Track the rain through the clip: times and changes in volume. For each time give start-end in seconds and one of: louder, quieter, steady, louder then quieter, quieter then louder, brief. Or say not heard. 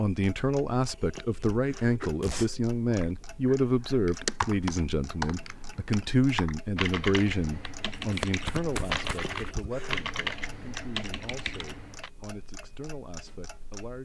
not heard.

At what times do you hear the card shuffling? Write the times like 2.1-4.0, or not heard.
8.0-9.3.